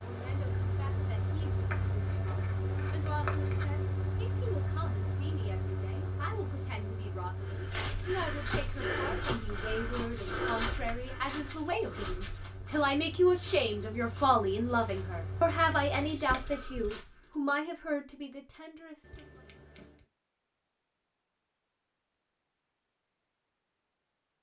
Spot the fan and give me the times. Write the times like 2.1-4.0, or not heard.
0.0-16.2.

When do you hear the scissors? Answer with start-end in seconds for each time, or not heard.
1.7-3.8, 10.7-12.6, 19.0-20.1.